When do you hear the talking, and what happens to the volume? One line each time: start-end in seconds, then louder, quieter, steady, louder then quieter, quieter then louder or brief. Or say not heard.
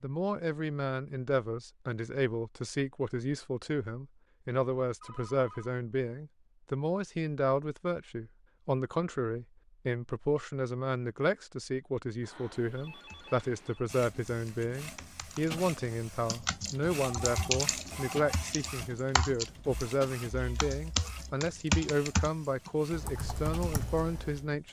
0.0-24.6 steady.